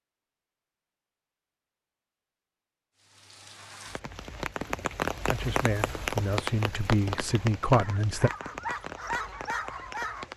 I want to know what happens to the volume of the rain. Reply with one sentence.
The volume of the rain goes up, then down.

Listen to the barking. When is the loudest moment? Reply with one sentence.
The volume of the barking peaks at 9 seconds.